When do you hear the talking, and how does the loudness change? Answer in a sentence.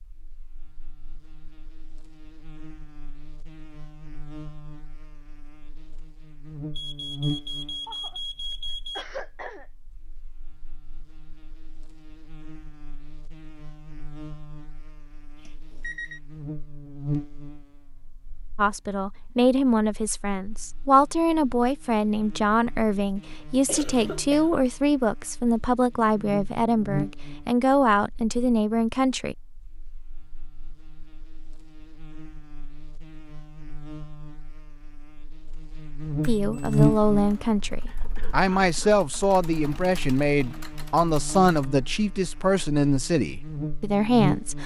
You can hear the talking from 18.6 to 29.4 s, at a steady volume; and from 36.2 to 44.6 s, at a steady volume.